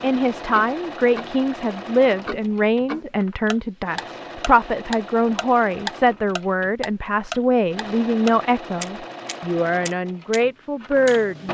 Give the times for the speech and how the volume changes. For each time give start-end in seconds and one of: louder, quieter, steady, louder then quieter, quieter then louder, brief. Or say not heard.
0.0-11.4 steady.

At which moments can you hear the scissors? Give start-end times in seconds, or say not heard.
not heard.